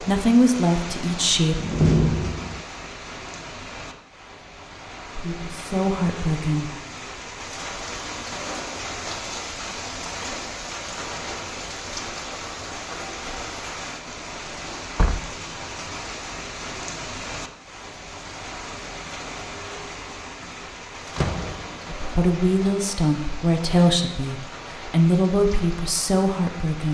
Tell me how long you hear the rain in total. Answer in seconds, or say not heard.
27 s.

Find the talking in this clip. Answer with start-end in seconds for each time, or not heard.
0.0-1.6, 5.2-6.7, 21.9-26.8.